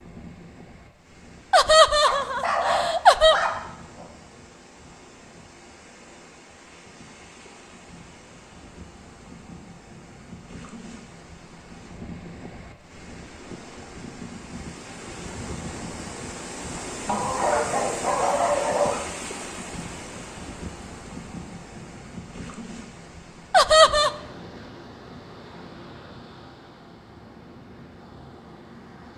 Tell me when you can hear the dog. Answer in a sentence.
The dog can be heard from 2.0 to 4.0 s and from 17.1 to 19.1 s.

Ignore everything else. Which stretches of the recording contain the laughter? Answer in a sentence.
The laughter can be heard from 1.5 to 3.4 s and from 23.5 to 24.1 s.